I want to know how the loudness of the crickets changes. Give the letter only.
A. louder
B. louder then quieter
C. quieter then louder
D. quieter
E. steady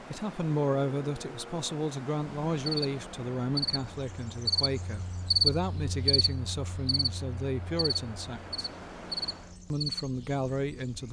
B.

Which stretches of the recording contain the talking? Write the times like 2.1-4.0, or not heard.
0.1-8.7, 9.7-11.0.